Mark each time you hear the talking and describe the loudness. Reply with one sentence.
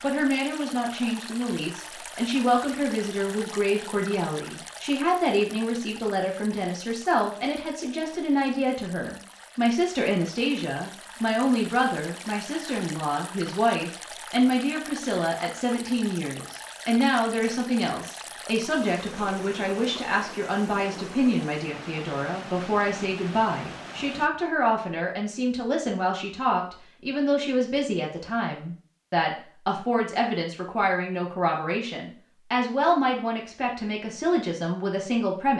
You can hear the talking from 0.0 to 35.5 s, at a steady volume.